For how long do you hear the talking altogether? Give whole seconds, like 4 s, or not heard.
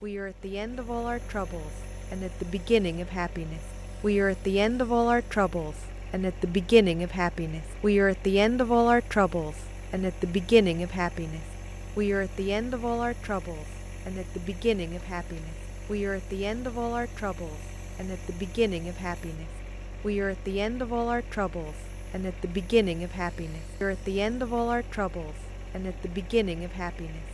27 s.